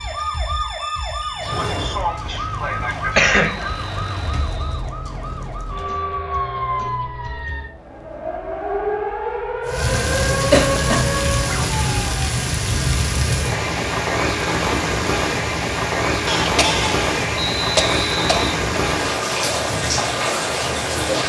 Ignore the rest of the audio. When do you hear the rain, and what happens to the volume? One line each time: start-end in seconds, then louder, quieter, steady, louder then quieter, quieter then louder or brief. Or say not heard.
9.7-21.2 steady.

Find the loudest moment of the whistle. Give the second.
18 s.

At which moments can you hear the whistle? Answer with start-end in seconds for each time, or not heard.
3.4-5.0, 17.4-18.4.